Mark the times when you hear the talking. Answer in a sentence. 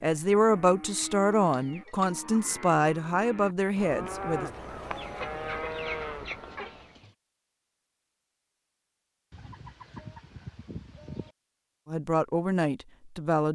The talking can be heard from 0.0 to 4.5 s and from 11.8 to 13.5 s.